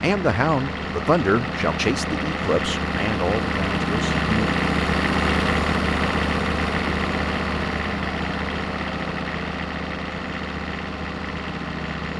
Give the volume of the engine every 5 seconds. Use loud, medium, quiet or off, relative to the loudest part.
loud, loud, medium.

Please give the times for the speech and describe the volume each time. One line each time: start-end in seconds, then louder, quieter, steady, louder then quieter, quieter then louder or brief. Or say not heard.
0.0-4.5 quieter.